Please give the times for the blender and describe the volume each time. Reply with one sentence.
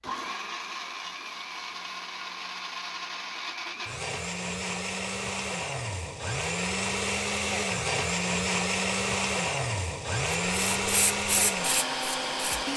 You can hear the blender from 0.0 to 12.7 s, getting louder.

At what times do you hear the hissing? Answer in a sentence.
The hissing can be heard from 10.5 to 12.7 s.